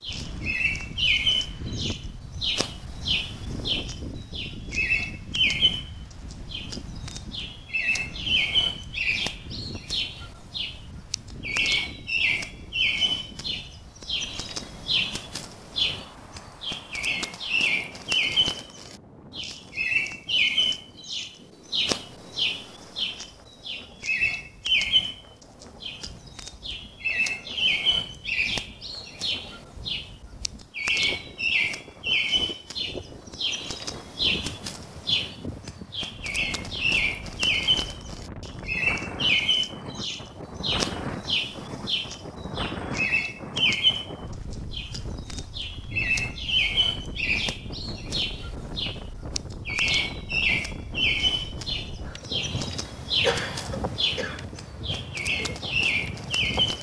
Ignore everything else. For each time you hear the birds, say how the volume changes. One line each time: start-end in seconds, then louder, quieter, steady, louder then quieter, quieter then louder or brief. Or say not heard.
0.0-56.7 steady.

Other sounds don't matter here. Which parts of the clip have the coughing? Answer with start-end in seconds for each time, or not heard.
53.2-54.5.